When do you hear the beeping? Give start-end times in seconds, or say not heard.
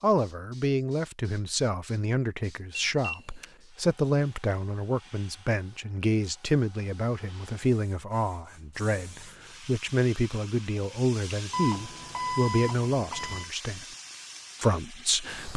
2.7-3.5, 11.5-13.5.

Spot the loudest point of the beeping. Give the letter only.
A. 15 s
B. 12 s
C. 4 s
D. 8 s
B.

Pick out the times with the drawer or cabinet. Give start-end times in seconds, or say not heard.
not heard.